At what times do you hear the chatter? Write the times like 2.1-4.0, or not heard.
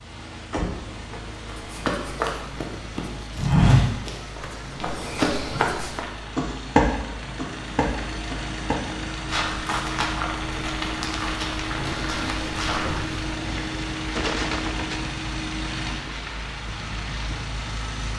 not heard.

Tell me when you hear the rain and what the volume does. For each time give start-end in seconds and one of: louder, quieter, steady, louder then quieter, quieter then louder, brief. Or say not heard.
0.0-18.1 louder.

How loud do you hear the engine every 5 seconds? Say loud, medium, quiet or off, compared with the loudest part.
medium, loud, loud, loud.